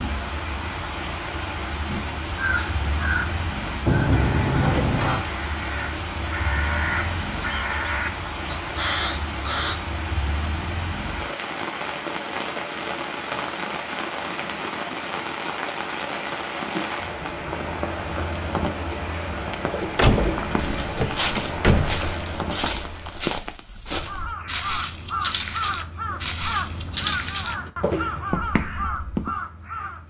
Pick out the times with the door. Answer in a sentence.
You can hear the door from 3.9 to 5.2 s and from 19.9 to 22.1 s.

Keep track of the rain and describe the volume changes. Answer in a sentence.
The loudness of the rain stays about the same.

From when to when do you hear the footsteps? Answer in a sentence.
You can hear the footsteps from 19.5 to 29.4 s.